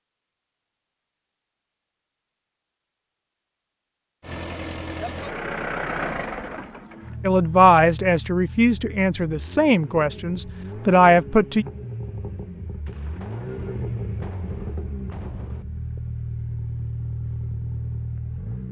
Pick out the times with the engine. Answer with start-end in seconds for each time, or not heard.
4.2-18.6.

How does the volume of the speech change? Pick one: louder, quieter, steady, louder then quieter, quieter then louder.
quieter then louder.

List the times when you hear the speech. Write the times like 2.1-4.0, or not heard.
7.2-11.7.